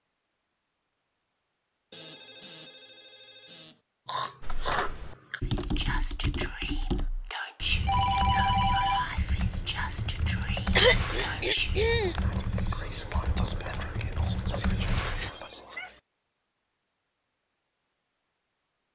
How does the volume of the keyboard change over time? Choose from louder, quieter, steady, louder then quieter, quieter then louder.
steady.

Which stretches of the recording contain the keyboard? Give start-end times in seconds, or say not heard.
4.4-15.3.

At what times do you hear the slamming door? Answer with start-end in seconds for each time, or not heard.
not heard.